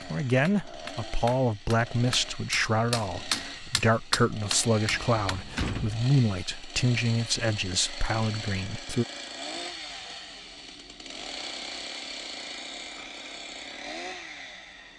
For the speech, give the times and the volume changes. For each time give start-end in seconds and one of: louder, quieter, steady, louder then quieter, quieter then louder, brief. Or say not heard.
0.1-9.1 steady.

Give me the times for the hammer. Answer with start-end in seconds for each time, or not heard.
0.0-5.5.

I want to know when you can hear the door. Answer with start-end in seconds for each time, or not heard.
4.9-6.0.